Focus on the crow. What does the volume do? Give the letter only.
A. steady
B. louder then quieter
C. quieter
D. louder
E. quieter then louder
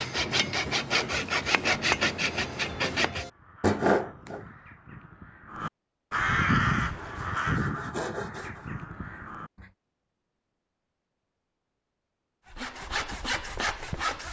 B.